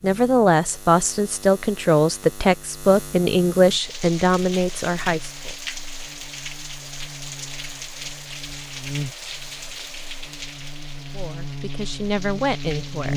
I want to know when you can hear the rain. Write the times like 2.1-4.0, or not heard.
3.6-13.1.